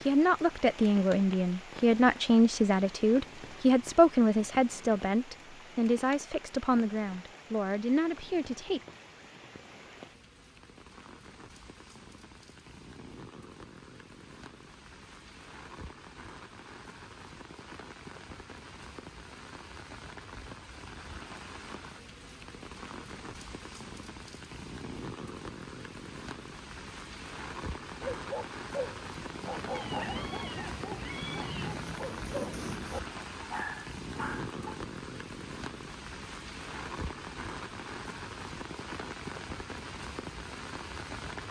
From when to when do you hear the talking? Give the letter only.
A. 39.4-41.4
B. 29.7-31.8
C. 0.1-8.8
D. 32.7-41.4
C.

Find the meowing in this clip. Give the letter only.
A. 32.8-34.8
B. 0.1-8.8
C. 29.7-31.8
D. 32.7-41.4
C.